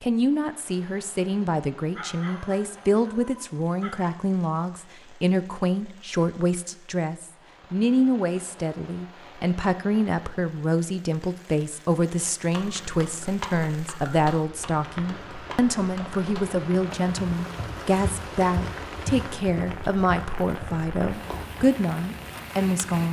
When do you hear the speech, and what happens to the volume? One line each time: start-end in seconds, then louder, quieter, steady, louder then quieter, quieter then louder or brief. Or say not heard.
0.0-23.0 steady.